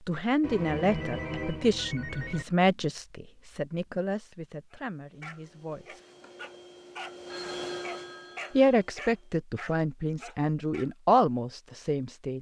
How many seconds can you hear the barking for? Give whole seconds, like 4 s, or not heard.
6 s.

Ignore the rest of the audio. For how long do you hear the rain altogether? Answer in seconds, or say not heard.
not heard.